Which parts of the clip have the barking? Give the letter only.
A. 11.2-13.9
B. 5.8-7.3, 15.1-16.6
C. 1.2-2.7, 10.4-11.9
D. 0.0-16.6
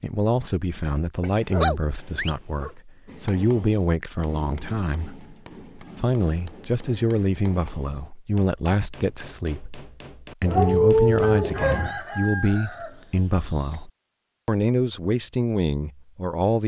C.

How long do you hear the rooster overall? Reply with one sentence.
You can hear the rooster for 3 seconds altogether.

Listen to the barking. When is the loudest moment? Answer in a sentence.
The loudest moment of the barking is at 11 seconds.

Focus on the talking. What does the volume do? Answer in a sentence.
The volume of the talking stays about the same.